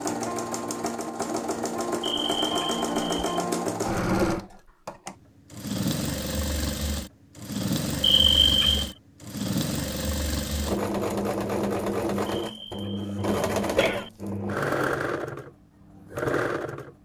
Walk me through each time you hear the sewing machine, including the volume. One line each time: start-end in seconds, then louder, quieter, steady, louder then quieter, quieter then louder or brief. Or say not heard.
0.0-16.9 steady.